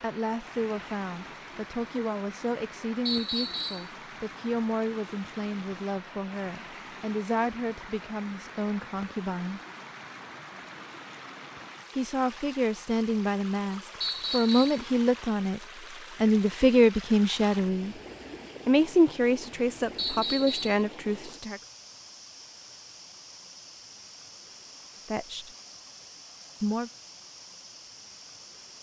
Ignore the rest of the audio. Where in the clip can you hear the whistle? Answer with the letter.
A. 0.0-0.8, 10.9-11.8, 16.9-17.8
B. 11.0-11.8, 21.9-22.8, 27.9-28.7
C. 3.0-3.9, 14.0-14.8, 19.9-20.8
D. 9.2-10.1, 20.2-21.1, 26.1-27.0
C.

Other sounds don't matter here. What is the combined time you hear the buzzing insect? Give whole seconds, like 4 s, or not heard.
not heard.